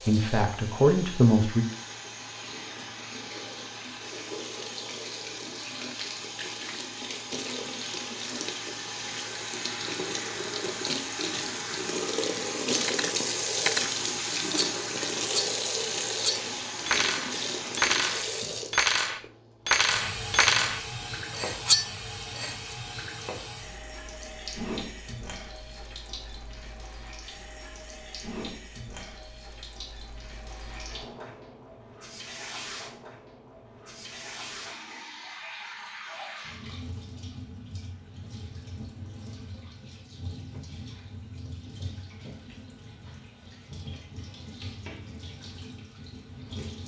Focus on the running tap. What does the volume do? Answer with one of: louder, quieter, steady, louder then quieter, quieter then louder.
louder then quieter.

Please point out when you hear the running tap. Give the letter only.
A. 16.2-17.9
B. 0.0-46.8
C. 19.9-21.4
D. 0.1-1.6
B.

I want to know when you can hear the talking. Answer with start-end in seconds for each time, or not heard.
0.1-1.6.